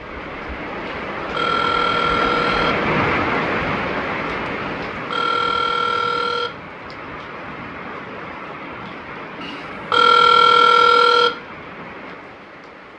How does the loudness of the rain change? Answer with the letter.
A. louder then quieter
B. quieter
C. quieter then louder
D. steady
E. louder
B.